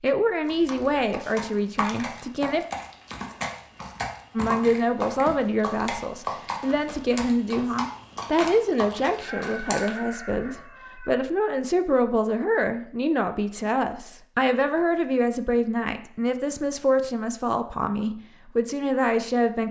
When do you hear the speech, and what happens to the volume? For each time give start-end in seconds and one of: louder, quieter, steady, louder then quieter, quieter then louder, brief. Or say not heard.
0.0-2.6 brief
4.3-19.6 steady.